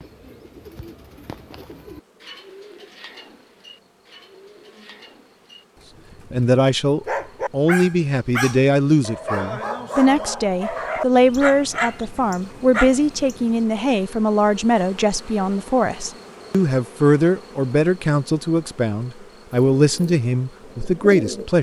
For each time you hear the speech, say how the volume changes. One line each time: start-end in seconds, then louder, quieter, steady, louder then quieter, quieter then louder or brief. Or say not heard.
6.3-21.5 steady.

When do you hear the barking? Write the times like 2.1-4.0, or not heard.
7.0-13.7.